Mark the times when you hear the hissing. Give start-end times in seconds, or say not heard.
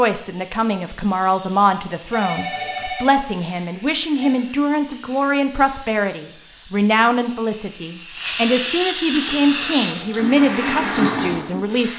0.0-11.9.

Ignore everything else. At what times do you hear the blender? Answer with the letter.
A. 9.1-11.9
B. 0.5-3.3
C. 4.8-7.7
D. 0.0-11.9
A.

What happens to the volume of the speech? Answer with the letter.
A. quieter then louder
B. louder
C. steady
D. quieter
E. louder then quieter
C.